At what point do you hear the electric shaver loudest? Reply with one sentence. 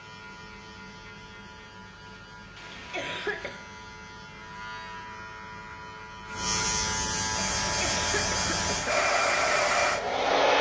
The volume of the electric shaver peaks at 7 seconds.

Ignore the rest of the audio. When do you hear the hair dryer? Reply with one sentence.
You can hear the hair dryer from 7.3 to 10.5 s.